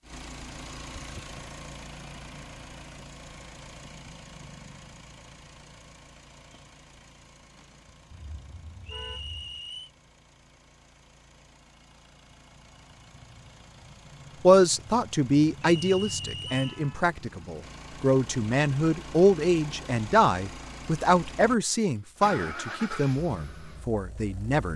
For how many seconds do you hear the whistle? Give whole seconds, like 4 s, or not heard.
2 s.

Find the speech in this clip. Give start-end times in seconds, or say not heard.
14.4-24.7.